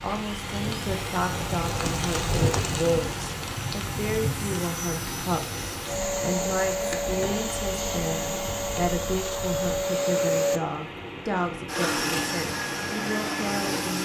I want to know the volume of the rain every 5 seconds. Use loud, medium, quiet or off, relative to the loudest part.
loud, medium, medium.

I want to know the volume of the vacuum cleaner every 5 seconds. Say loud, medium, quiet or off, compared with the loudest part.
medium, loud, loud.